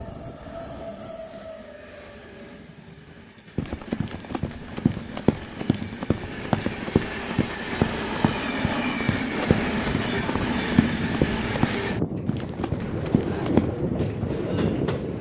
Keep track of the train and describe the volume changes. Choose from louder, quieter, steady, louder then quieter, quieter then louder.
louder.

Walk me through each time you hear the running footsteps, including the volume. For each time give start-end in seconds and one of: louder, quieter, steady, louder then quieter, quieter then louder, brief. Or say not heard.
3.5-13.7 steady.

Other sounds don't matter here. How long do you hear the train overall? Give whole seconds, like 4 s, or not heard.
15 s.